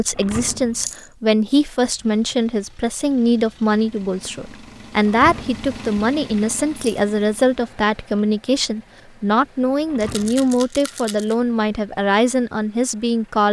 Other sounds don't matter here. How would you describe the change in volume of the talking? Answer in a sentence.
The loudness of the talking stays about the same.